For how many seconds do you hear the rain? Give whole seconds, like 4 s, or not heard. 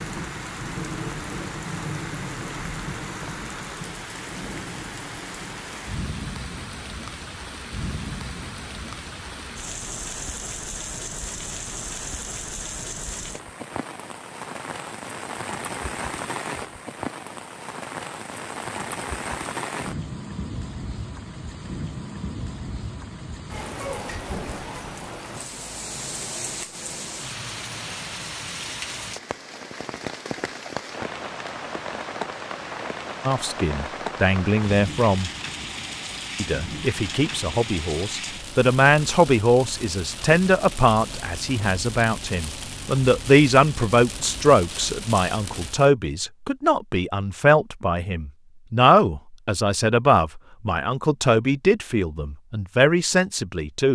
46 s.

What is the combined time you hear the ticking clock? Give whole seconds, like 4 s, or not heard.
not heard.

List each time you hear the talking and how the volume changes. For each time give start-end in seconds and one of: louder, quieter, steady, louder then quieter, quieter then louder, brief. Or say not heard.
33.2-35.3 brief
36.4-53.9 steady.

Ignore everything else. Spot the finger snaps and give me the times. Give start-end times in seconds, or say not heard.
not heard.